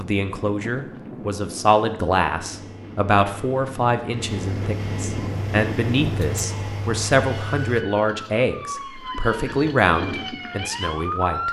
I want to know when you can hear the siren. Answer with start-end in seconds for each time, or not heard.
5.2-11.4.